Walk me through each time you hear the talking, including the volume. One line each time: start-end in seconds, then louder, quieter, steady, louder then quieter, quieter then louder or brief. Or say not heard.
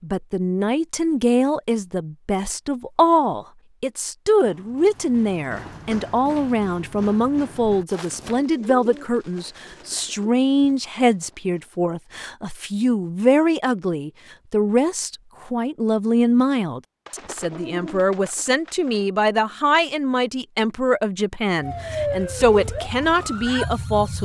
0.0-24.2 steady.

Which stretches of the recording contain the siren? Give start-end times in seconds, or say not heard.
21.6-24.2.